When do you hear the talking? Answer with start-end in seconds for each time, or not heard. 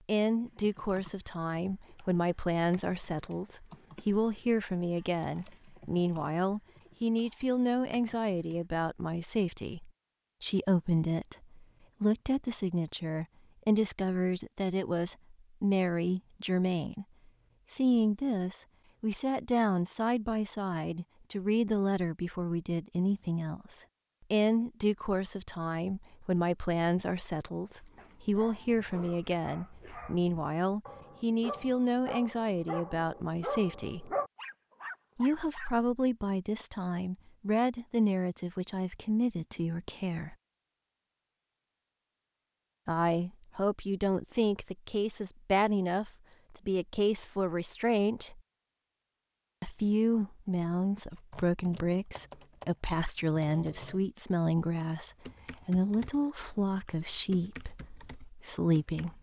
0.1-17.1, 17.7-34.1, 35.1-40.4, 42.9-48.4, 49.6-59.1.